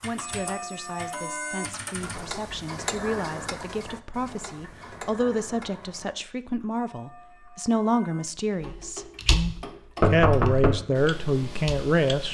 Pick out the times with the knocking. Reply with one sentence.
The knocking can be heard from 10.0 to 10.8 s.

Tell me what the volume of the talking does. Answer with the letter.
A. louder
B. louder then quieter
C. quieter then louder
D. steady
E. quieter
A.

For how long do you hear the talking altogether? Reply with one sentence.
The talking can be heard for 12 seconds in total.